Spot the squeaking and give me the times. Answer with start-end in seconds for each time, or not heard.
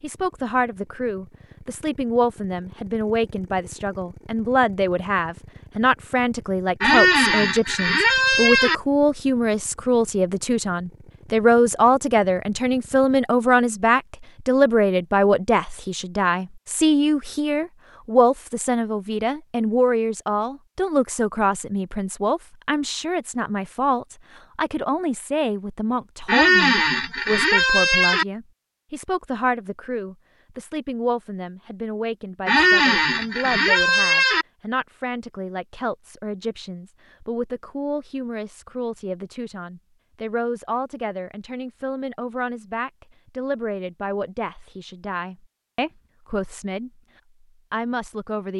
6.8-8.8, 26.2-28.2, 32.5-34.5.